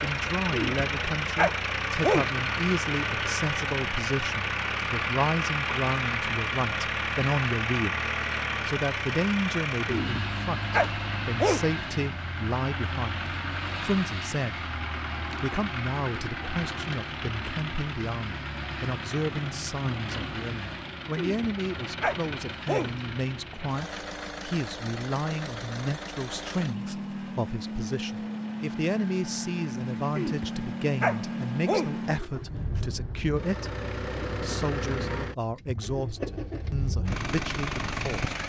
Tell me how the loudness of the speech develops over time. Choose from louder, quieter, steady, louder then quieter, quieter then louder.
steady.